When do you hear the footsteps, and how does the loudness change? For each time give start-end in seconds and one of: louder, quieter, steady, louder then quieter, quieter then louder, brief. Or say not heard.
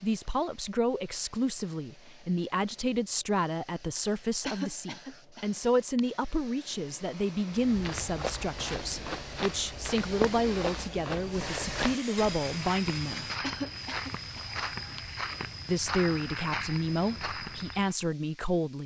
7.5-17.9 steady.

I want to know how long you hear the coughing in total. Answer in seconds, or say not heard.
3 s.